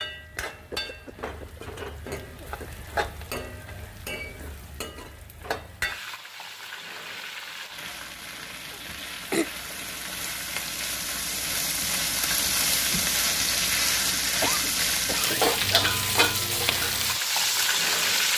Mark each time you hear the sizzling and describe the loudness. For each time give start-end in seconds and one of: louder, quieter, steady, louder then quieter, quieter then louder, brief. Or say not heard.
0.0-18.3 louder.